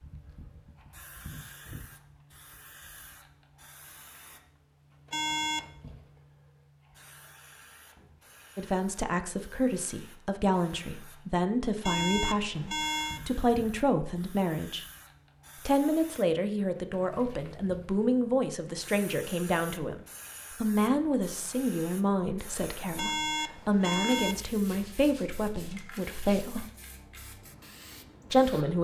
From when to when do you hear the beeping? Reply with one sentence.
You can hear the beeping from 5.1 to 5.7 s, from 11.8 to 13.2 s and from 22.9 to 24.4 s.